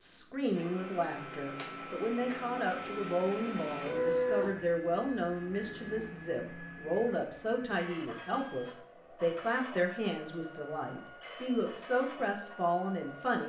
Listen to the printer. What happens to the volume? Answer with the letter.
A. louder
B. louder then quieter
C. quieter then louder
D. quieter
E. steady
B.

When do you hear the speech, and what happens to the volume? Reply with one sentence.
You can hear the speech from 0.0 to 13.4 s, at a steady volume.